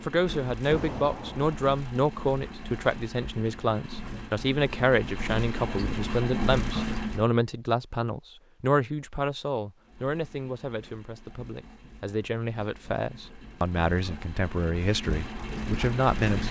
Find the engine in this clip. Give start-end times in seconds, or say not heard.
0.0-7.3, 9.8-16.4.